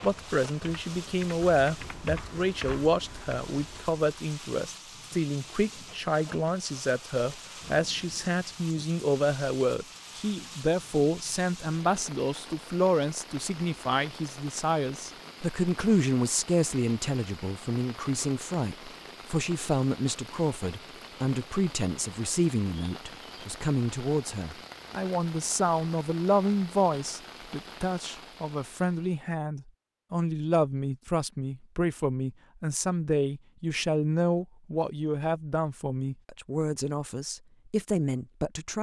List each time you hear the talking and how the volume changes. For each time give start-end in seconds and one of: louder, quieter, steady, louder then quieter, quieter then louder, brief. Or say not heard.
0.0-38.7 steady.